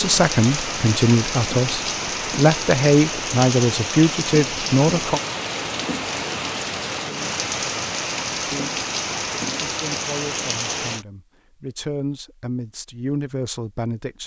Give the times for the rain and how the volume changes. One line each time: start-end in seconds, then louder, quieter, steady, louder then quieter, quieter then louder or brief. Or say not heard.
0.0-11.1 steady.